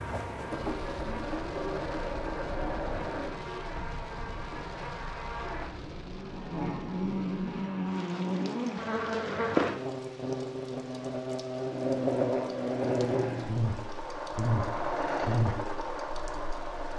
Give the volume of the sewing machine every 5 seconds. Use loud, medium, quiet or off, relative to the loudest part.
loud, off, loud, loud.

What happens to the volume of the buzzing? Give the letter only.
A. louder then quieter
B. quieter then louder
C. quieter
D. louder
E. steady
D.